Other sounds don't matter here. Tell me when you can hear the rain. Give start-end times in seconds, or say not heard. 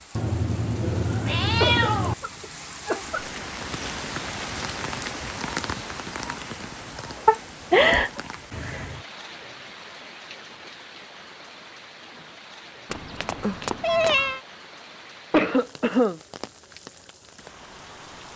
0.0-18.3.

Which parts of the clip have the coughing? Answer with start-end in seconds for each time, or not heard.
1.6-3.2, 7.2-8.1, 15.3-16.2.